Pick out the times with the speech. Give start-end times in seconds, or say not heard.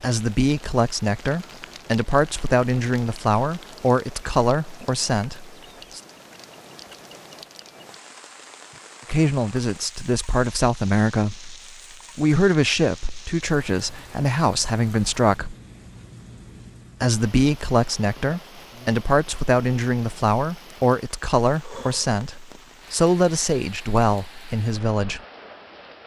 0.0-6.0, 9.1-11.6, 12.2-15.6, 17.0-25.2.